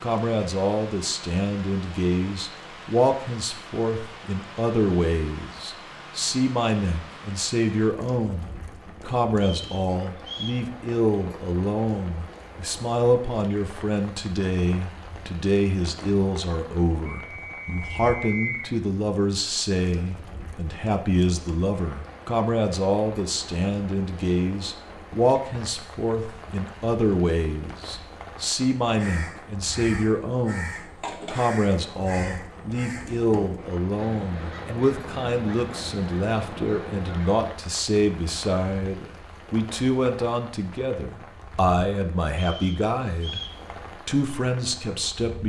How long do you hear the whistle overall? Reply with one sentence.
The whistle can be heard for 4 seconds in total.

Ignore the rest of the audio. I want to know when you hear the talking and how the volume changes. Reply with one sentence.
The talking can be heard from 0.0 to 43.4 s, at a steady volume; and briefly from 44.0 to 45.4 s.